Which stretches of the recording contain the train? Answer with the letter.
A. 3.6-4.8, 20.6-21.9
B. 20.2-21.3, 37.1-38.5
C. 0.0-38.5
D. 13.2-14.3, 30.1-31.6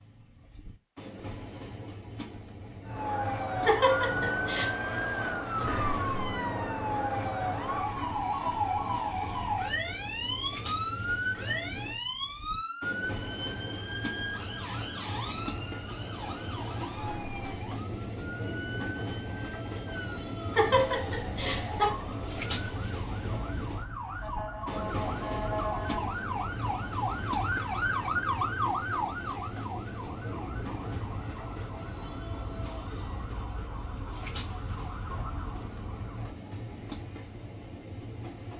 C.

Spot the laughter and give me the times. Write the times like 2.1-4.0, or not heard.
3.6-4.8, 20.6-21.9.